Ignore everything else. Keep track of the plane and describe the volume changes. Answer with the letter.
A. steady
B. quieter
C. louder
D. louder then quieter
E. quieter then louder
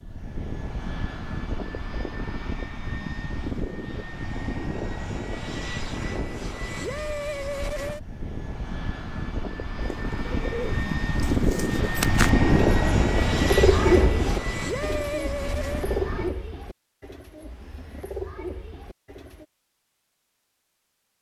C.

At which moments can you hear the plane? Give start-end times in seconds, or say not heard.
0.0-16.4.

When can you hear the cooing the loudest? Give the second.
14 s.